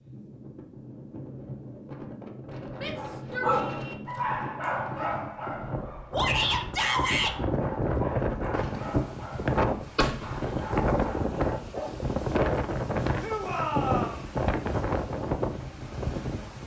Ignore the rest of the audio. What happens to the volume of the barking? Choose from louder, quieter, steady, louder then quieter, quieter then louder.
quieter.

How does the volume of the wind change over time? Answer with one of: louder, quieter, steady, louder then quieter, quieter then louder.
louder.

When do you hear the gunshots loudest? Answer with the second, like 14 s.
10 s.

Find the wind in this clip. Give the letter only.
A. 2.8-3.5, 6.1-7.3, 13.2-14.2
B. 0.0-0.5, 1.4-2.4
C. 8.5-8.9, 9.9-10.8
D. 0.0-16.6
D.